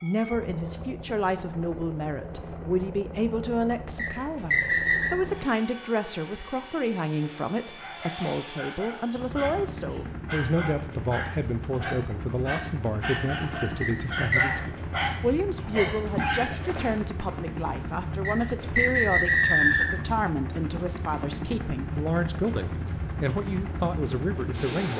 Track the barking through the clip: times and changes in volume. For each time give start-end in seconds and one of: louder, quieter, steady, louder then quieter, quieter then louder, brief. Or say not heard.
7.8-16.6 louder.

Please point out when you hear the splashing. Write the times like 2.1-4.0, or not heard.
16.1-17.1.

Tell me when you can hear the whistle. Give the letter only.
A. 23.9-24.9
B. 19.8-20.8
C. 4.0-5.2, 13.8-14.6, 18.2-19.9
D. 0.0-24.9
C.